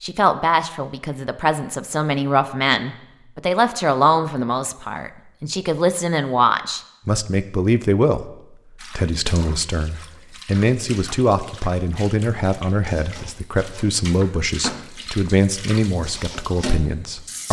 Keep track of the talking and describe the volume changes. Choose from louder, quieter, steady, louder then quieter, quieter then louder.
steady.